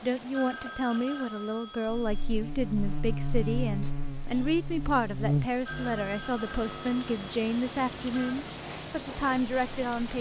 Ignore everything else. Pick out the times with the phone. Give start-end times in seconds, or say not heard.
0.3-2.3, 5.7-8.3.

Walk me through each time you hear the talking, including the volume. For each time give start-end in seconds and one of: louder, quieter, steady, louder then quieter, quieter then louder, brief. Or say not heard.
0.0-10.1 steady.